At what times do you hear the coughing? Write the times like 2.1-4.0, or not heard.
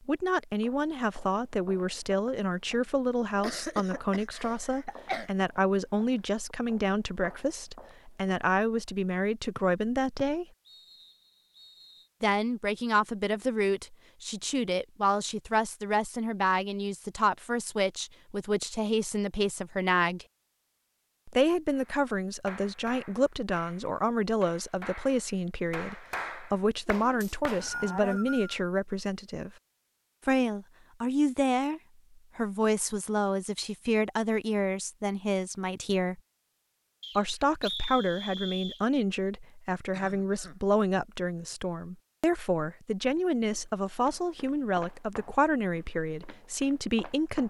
3.4-5.3, 39.9-40.5.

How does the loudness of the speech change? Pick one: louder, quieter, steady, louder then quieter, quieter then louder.
steady.